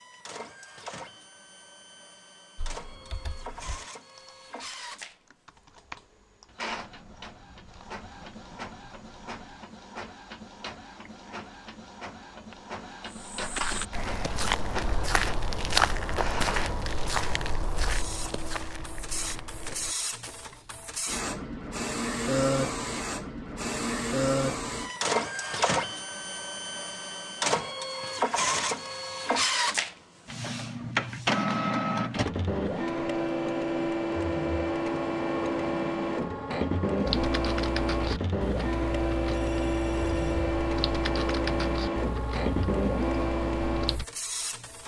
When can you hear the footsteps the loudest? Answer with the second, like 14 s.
16 s.